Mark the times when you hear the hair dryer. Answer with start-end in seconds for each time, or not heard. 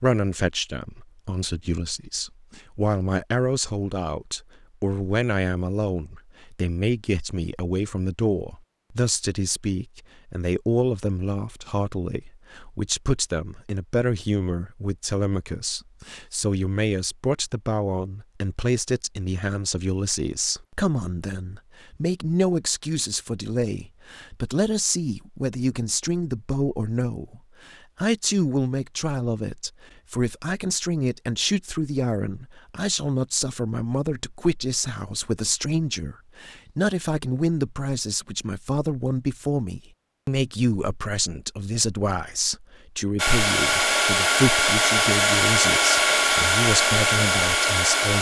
43.1-48.1.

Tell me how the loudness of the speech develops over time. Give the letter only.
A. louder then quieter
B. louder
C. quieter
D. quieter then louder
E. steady
E.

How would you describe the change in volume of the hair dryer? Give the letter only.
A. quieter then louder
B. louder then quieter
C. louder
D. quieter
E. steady
E.